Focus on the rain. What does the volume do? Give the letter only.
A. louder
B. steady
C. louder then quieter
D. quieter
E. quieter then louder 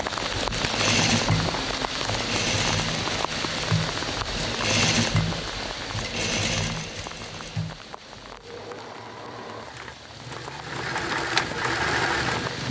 E.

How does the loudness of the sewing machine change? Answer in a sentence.
The volume of the sewing machine goes down, then up.